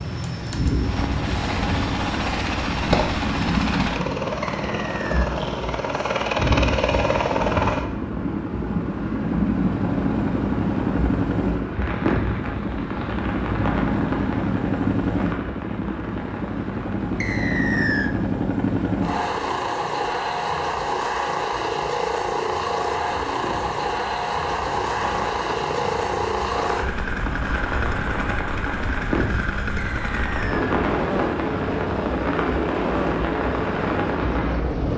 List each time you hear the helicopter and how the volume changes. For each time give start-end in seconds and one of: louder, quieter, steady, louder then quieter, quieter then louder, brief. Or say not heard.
0.0-34.9 steady.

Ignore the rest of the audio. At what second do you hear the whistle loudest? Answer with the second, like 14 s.
18 s.